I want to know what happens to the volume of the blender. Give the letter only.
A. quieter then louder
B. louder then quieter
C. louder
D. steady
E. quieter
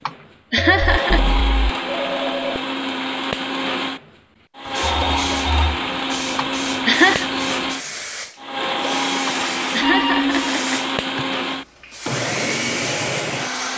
D.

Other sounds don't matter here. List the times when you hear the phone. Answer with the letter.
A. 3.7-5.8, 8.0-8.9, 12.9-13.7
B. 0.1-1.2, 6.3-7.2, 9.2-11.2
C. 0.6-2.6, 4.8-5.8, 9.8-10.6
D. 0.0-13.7
C.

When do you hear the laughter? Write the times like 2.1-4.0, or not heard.
0.1-1.2, 6.3-7.2, 9.2-11.2.